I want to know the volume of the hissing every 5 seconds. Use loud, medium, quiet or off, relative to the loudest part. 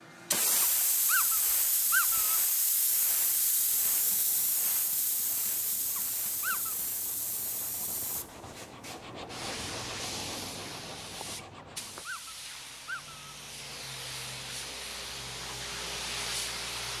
loud, medium, medium, loud.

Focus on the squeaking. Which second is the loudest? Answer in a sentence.
The loudest moment of the squeaking is at 2 seconds.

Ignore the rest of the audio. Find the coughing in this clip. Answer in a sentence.
You can't hear the coughing here.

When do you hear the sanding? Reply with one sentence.
The sanding can be heard from 2.9 to 12.1 s.